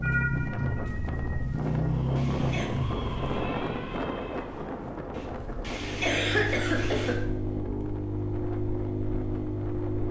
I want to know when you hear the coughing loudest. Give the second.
6 s.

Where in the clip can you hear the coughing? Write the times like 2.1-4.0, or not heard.
1.6-2.7, 5.2-7.2.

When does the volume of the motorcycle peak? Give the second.
2 s.